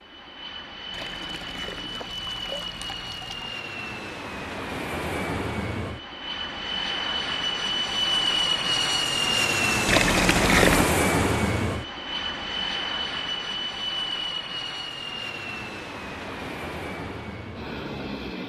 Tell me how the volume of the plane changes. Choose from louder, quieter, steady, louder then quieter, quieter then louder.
louder then quieter.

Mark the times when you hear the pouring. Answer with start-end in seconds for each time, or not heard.
0.9-3.5, 9.8-10.9.